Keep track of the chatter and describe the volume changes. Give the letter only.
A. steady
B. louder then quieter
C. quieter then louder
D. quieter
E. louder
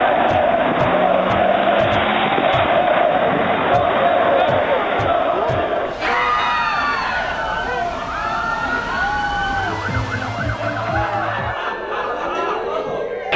D.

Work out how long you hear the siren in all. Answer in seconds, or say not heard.
13 s.